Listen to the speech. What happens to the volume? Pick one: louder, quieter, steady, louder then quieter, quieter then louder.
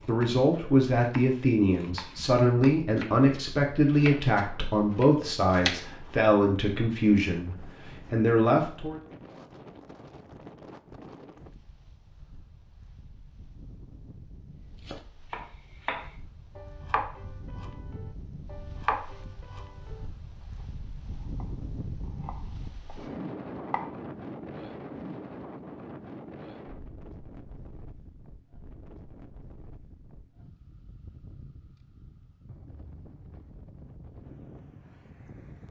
steady.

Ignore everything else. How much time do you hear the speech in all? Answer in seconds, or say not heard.
9 s.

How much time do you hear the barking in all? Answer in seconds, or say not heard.
not heard.